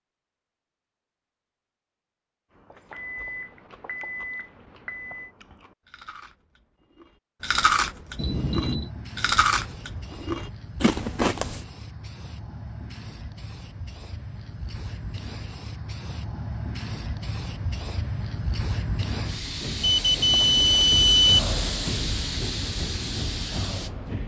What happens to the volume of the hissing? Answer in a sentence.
The volume of the hissing goes up.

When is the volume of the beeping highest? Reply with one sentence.
The loudest moment of the beeping is at 21 seconds.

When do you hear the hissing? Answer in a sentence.
You can hear the hissing from 8.0 to 24.2 s.